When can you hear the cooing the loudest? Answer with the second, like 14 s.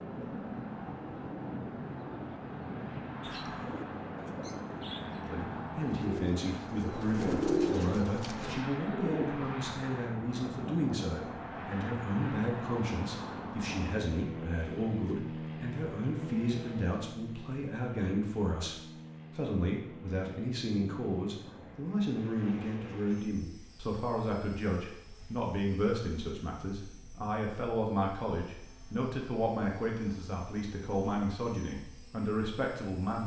8 s.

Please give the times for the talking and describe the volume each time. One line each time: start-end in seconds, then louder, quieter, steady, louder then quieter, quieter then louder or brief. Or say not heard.
5.2-33.2 steady.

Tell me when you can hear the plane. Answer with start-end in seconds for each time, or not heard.
0.0-33.2.